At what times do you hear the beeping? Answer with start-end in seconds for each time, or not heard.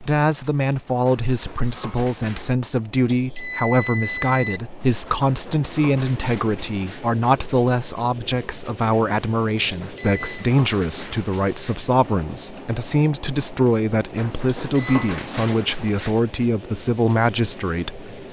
3.0-4.6, 9.7-10.5, 14.7-15.1.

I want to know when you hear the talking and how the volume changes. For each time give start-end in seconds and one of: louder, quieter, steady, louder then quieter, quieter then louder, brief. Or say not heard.
0.0-18.1 steady.